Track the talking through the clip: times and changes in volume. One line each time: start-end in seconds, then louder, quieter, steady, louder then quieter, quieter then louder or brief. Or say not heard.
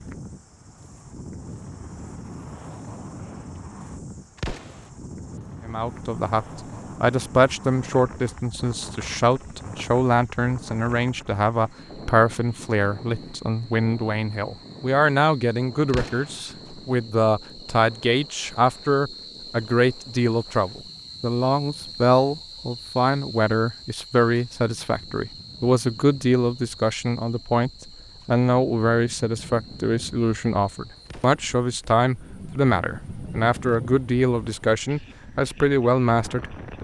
5.7-36.8 steady.